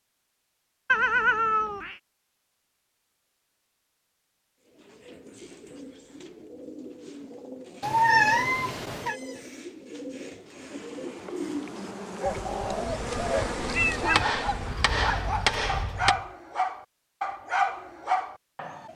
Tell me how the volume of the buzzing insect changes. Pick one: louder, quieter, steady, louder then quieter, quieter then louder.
louder then quieter.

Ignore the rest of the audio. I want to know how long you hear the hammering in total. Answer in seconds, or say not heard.
2 s.